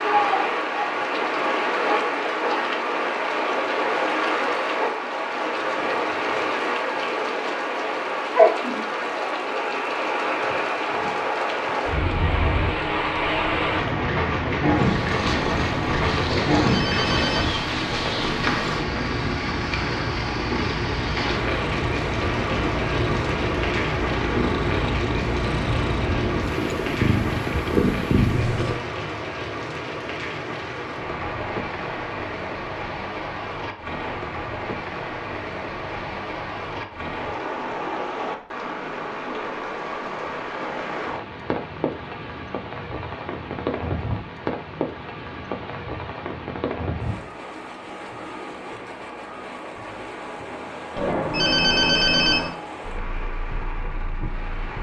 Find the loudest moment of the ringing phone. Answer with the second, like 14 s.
52 s.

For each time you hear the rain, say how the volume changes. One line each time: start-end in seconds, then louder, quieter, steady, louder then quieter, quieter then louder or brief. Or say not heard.
0.0-54.7 quieter.